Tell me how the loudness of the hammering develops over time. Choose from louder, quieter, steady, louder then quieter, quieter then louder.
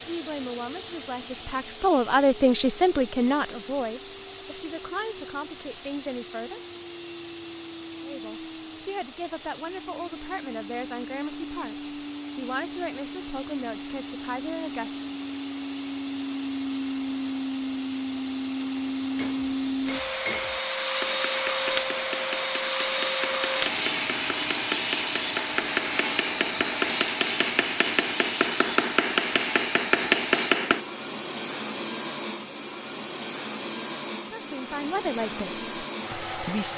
louder.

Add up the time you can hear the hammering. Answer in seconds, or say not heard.
12 s.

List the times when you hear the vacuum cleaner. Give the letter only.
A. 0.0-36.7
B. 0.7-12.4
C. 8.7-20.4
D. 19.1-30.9
A.